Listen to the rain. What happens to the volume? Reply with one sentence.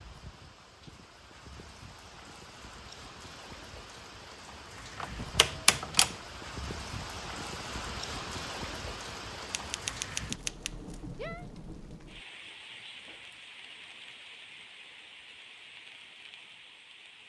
The loudness of the rain goes up, then down.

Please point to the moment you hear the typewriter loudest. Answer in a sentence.
The loudest moment of the typewriter is at 6 seconds.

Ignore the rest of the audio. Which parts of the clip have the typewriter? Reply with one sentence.
The typewriter can be heard from 5.0 to 6.2 s and from 9.5 to 11.4 s.